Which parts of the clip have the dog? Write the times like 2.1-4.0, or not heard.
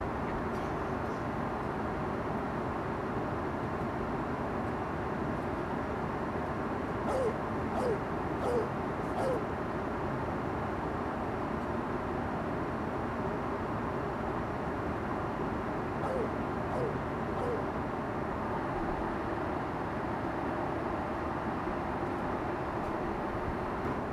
7.0-9.4, 16.0-17.7.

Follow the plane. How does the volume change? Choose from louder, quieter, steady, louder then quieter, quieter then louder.
steady.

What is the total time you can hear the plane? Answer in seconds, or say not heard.
24 s.